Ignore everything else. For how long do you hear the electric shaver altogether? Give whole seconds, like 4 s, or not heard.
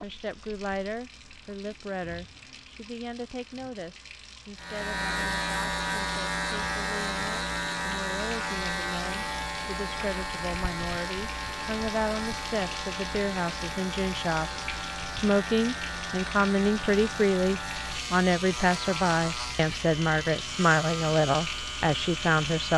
18 s.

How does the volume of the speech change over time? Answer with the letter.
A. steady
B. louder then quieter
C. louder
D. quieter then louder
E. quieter
C.